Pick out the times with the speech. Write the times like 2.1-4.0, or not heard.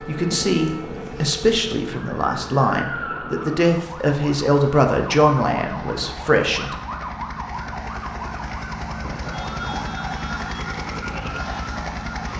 0.1-6.8.